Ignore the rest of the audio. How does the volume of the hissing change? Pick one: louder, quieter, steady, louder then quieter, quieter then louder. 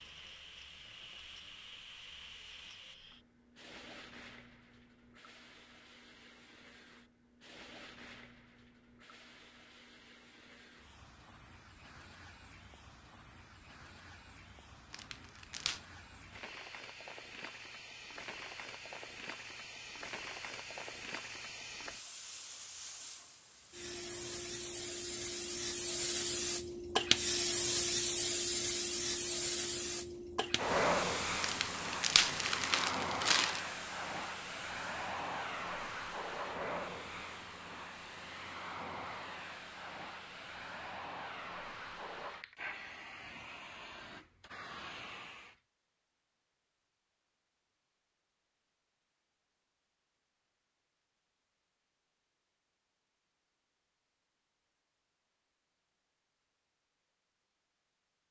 louder then quieter.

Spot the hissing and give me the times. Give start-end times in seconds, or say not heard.
0.0-45.6.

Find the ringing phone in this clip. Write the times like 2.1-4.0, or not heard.
not heard.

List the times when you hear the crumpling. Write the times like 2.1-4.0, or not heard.
14.9-15.8, 31.4-33.6.